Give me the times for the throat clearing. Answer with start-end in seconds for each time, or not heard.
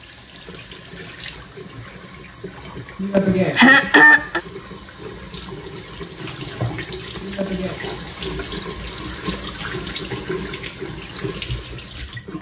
3.0-4.4, 7.2-7.8.